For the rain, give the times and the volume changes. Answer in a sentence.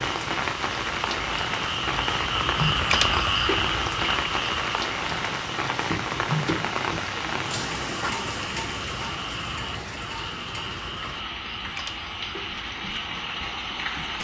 The rain can be heard from 0.0 to 14.2 s, getting quieter.